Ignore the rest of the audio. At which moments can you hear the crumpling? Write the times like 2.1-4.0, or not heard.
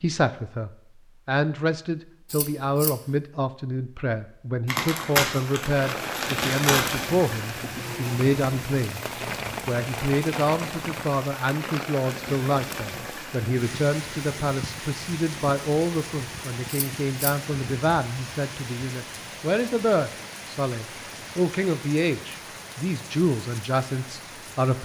4.7-7.0.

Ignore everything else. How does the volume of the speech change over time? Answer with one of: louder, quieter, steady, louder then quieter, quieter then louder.
steady.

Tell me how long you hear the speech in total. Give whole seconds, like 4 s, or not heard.
24 s.